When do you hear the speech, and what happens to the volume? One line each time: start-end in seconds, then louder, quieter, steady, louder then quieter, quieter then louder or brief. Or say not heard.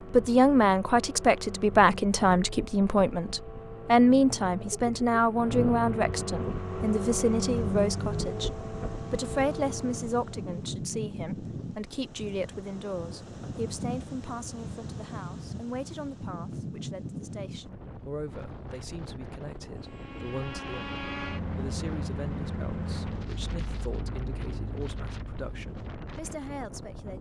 0.1-27.1 quieter.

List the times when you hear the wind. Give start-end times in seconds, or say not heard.
6.4-27.1.